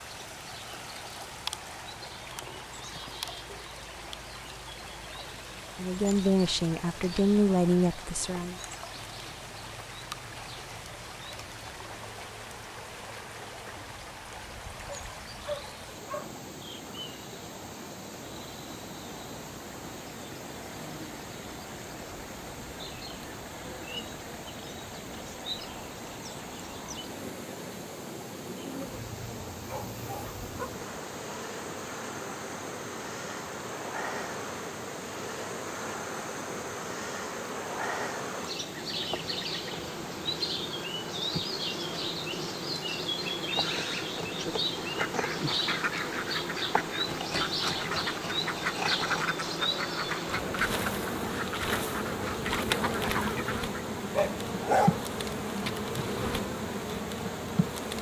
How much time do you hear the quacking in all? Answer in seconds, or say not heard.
9 s.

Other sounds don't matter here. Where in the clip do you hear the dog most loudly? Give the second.
55 s.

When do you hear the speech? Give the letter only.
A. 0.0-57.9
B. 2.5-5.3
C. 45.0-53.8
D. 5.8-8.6
D.